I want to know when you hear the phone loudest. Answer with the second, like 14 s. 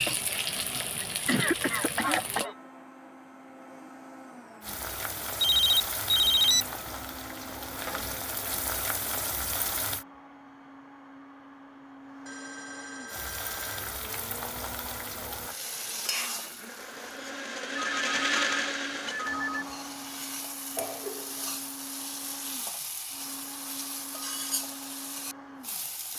6 s.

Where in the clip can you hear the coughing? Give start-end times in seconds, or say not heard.
1.1-2.5, 20.7-21.6.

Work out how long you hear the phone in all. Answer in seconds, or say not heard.
5 s.